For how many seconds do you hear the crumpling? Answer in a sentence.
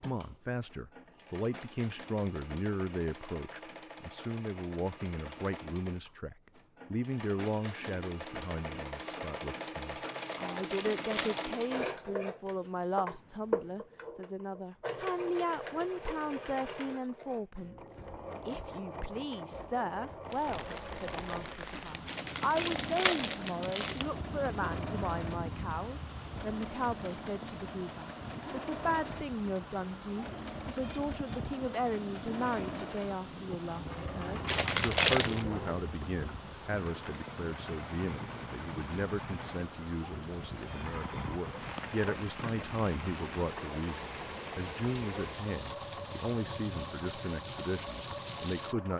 You can hear the crumpling for 4 seconds altogether.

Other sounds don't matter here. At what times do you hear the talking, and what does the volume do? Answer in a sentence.
You can hear the talking from 0.0 to 48.9 s, at a steady volume.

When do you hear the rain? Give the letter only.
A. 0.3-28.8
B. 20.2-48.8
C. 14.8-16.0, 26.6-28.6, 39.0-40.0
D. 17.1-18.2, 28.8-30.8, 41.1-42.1
B.